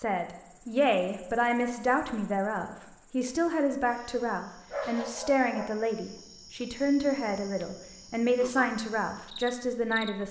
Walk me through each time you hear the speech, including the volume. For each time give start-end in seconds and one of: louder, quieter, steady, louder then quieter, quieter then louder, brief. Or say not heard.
0.0-10.2 steady.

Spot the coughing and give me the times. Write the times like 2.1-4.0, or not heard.
not heard.